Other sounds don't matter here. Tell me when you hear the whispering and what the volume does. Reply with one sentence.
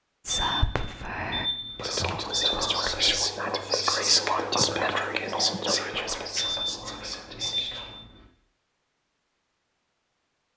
You can hear the whispering from 0.2 to 8.0 s, getting louder then quieter.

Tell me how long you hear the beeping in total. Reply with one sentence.
The beeping can be heard for 4 seconds in total.